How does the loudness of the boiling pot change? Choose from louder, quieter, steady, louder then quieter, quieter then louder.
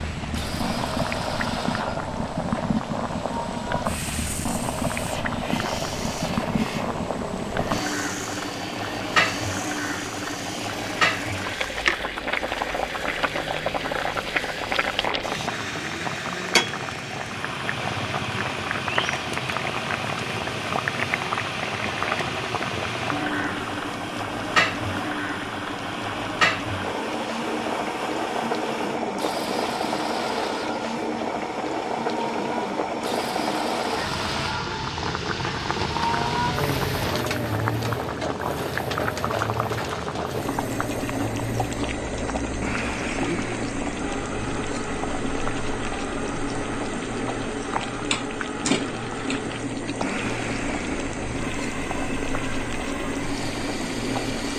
steady.